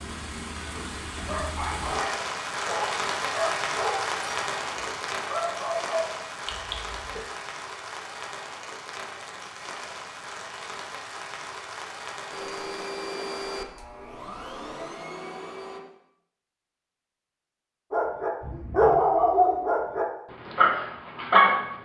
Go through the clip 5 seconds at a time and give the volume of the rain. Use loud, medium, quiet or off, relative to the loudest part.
loud, medium, medium, off, off.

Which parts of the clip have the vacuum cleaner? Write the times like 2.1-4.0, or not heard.
12.3-15.8.